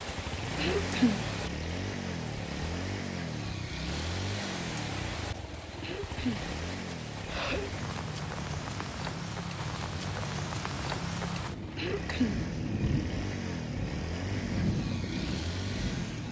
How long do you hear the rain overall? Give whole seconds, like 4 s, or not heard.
16 s.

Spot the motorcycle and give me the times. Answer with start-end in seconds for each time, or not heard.
0.0-16.2.